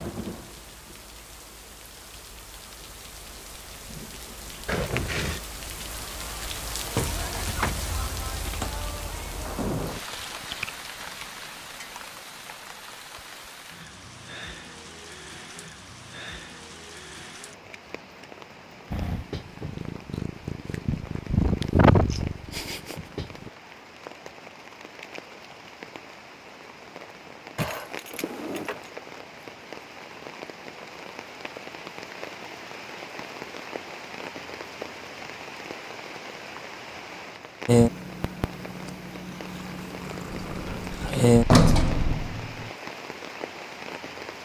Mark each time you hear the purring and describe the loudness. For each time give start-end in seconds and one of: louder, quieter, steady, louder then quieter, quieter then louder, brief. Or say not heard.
18.9-23.5 louder then quieter
37.6-42.2 louder.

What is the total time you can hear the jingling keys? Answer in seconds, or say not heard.
2 s.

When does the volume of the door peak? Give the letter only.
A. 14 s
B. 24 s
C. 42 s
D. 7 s
C.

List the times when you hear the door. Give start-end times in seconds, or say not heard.
40.3-42.7.